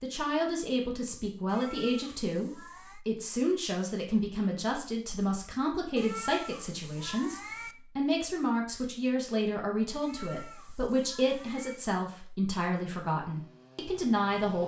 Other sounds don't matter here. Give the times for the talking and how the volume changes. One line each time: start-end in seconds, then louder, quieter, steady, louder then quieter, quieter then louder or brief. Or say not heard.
0.0-14.6 steady.